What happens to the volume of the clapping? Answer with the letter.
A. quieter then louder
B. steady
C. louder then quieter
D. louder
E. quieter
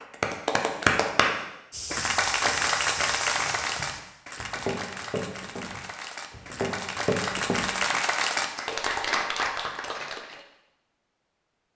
A.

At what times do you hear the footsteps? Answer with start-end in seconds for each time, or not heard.
1.7-7.7.